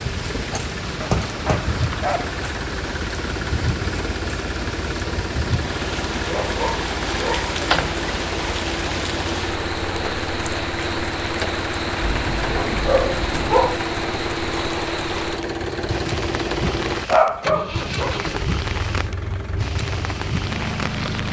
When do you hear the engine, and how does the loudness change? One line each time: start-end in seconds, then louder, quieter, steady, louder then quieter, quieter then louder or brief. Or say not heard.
0.0-21.2 steady.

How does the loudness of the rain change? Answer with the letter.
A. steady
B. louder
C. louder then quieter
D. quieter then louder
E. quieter
A.